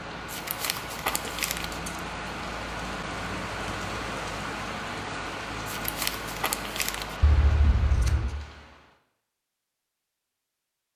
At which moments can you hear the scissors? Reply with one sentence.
The scissors can be heard from 1.2 to 2.0 s and from 7.2 to 8.3 s.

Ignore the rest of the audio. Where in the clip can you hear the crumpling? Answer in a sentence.
The crumpling can be heard from 0.2 to 1.8 s and from 5.7 to 7.2 s.